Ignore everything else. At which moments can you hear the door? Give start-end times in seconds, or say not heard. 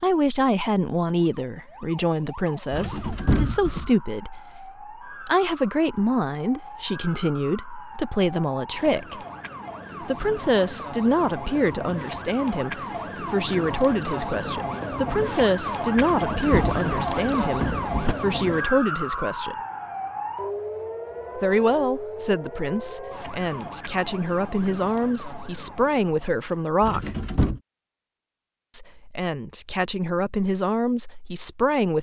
2.7-3.9, 15.9-18.1, 26.8-27.6.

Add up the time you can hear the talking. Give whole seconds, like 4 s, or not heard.
28 s.